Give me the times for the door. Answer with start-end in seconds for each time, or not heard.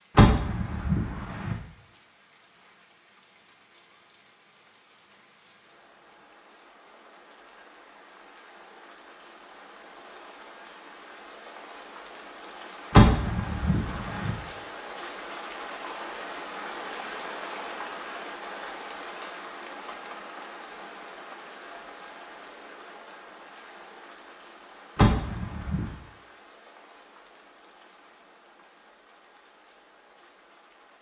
0.1-1.6, 12.9-14.3, 24.9-25.9.